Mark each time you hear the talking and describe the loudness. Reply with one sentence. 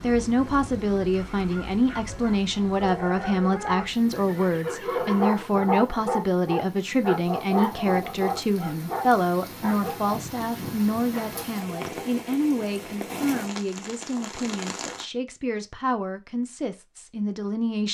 The talking can be heard from 0.0 to 17.8 s, getting quieter.